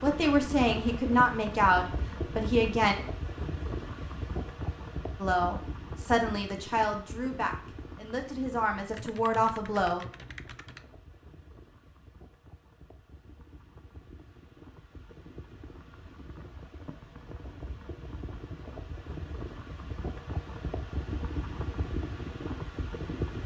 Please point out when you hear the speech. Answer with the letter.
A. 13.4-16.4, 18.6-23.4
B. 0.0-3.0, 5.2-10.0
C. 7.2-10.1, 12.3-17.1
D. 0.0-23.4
B.